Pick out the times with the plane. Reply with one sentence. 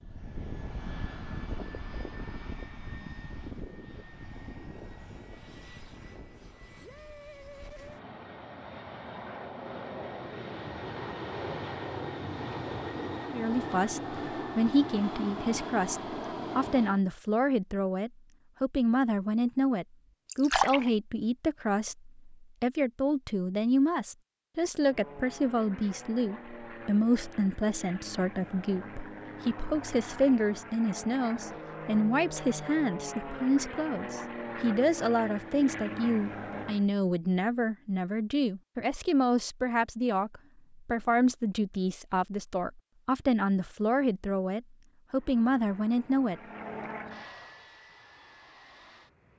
You can hear the plane from 0.0 to 17.1 s, from 24.8 to 36.9 s and from 45.1 to 49.3 s.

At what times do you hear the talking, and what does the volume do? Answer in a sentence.
You can hear the talking from 13.3 to 46.4 s, at a steady volume.